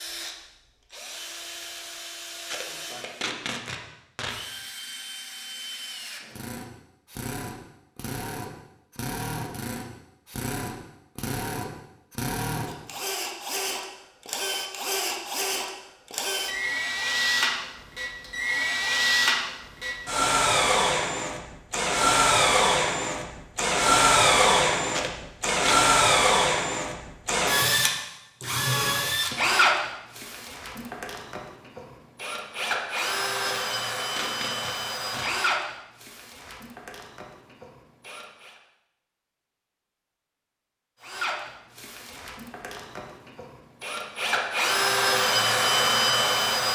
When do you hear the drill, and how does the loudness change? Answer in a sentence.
You can hear the drill from 0.0 to 38.5 s, getting louder then quieter; and from 41.0 to 46.7 s, getting louder.